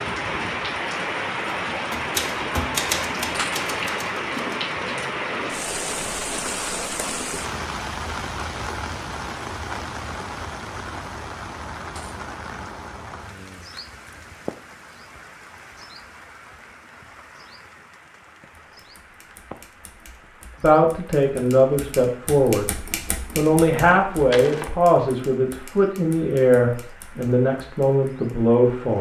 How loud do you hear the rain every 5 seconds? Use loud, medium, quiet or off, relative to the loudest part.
loud, loud, medium, quiet, quiet, quiet.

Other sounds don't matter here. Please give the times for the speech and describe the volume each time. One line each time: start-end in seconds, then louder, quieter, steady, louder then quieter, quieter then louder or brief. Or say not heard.
20.6-22.8 brief
23.4-28.9 steady.